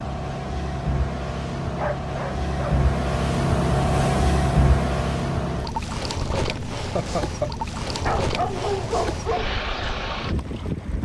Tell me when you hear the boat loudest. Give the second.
4 s.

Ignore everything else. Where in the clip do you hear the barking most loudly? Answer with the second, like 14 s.
9 s.